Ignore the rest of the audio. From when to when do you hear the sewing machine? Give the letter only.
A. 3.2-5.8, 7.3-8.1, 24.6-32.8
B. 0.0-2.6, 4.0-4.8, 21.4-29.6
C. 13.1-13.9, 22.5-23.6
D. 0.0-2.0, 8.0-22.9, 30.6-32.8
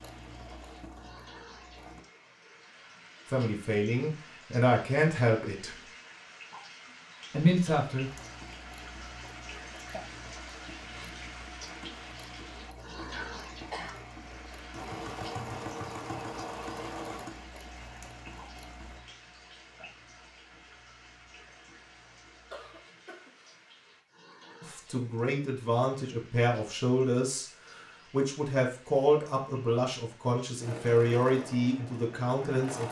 D.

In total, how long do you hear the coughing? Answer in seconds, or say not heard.
2 s.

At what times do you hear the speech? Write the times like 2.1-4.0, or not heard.
3.2-5.8, 7.3-8.1, 24.6-32.8.